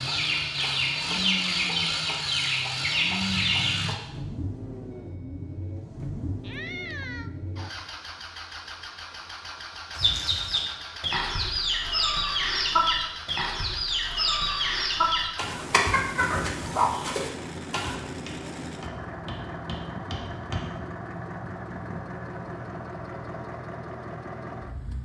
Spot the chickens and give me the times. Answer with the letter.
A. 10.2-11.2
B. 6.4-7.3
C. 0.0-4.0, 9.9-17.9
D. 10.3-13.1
C.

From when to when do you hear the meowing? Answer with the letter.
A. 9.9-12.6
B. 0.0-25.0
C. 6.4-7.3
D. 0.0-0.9
C.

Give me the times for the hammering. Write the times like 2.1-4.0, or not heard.
18.1-20.8.